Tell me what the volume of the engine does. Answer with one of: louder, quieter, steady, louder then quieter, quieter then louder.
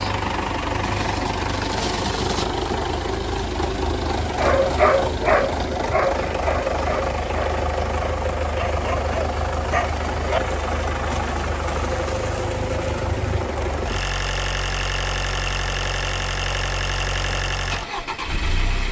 steady.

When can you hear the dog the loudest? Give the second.
5 s.